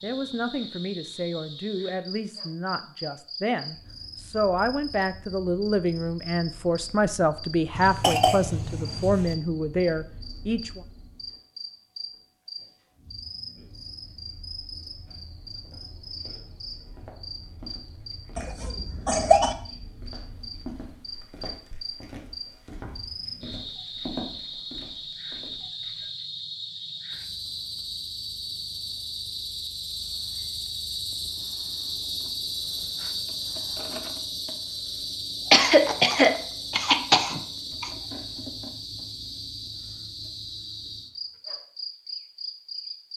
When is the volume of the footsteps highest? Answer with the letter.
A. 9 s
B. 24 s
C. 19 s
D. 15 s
B.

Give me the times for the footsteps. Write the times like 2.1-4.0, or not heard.
15.1-26.1.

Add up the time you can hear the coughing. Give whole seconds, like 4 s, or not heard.
5 s.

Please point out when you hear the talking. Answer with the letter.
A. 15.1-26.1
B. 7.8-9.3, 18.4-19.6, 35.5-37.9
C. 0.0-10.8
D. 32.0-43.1
C.